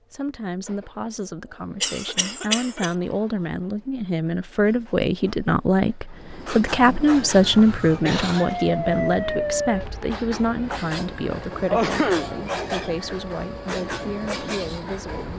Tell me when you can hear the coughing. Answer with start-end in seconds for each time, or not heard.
1.8-2.9, 7.4-8.5, 11.7-12.4.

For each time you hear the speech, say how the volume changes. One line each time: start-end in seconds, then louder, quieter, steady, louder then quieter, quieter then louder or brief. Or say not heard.
0.1-15.3 louder then quieter.